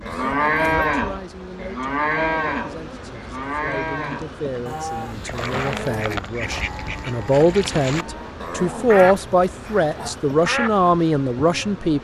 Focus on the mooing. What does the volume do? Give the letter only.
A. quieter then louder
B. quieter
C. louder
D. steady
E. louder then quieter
B.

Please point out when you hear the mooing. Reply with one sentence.
The mooing can be heard from 0.0 to 8.3 s.